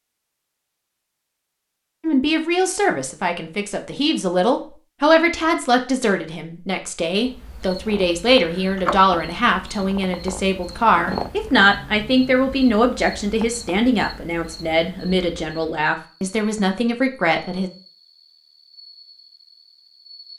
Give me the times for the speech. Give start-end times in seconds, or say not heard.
2.0-17.7.